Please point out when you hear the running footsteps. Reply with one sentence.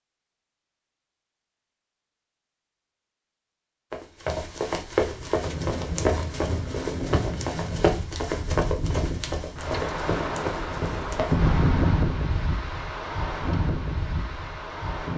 You can hear the running footsteps from 3.9 to 11.4 s.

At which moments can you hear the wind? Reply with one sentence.
You can hear the wind from 5.0 to 15.1 s.